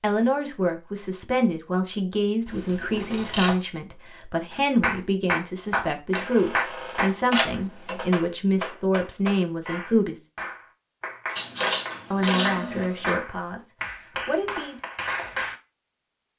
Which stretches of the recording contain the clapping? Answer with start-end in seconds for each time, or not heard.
4.5-15.6.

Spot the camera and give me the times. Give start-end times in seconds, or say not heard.
2.5-3.5, 6.2-8.1, 11.3-13.1.